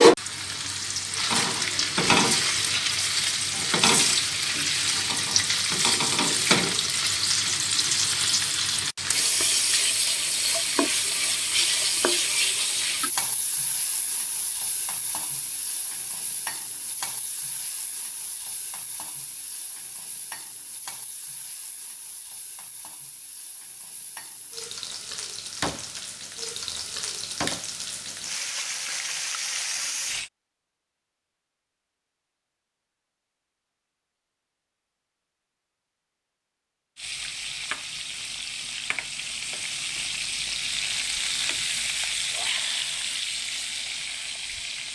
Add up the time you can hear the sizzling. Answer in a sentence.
You can hear the sizzling for 38 seconds altogether.